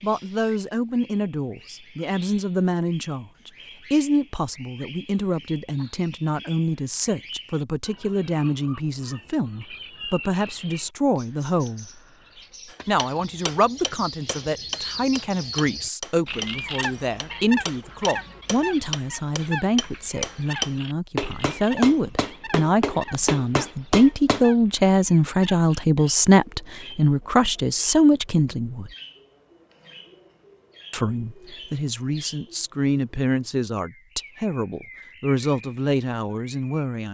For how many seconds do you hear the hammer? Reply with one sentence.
You can hear the hammer for 12 seconds altogether.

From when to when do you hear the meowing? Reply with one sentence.
The meowing can't be heard in this clip.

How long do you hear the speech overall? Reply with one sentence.
The speech can be heard for 34 seconds in total.